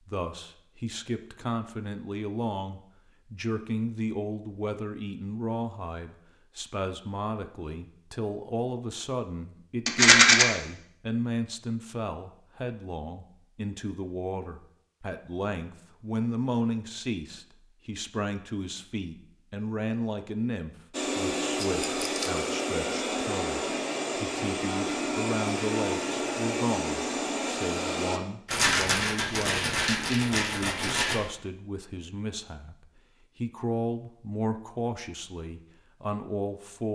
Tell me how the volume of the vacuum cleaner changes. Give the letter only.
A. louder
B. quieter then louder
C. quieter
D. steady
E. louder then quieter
D.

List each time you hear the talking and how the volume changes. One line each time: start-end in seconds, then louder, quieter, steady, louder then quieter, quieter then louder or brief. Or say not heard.
0.1-36.9 steady.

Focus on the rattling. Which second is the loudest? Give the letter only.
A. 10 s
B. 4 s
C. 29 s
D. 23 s
A.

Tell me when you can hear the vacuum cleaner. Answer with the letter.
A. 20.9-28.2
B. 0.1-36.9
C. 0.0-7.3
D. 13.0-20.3
A.